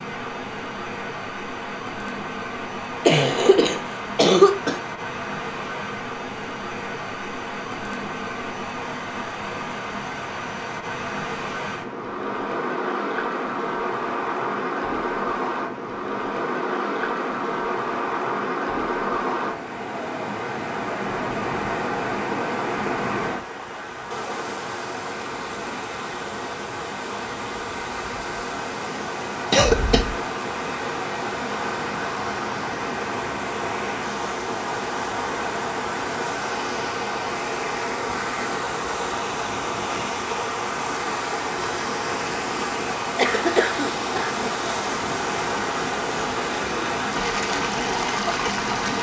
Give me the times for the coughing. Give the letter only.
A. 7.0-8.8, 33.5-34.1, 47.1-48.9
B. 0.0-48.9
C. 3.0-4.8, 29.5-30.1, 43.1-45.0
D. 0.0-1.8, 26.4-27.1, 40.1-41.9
C.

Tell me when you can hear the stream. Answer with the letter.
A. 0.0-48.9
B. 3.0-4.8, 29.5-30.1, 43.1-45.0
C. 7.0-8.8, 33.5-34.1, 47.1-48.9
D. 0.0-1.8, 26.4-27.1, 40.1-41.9
A.